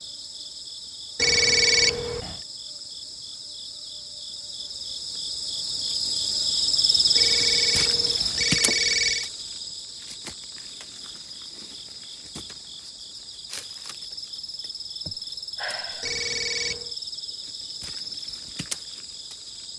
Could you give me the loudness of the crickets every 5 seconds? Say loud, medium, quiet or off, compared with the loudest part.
quiet, loud, quiet, medium.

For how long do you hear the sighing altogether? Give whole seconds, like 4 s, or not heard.
2 s.